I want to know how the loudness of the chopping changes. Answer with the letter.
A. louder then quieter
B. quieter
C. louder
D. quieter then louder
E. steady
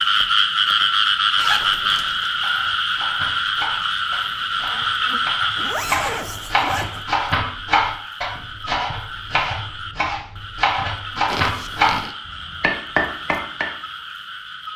C.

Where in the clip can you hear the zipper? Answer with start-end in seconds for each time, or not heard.
1.4-2.2, 5.5-7.0, 11.2-12.2.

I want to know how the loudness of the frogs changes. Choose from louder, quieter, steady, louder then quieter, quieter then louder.
quieter.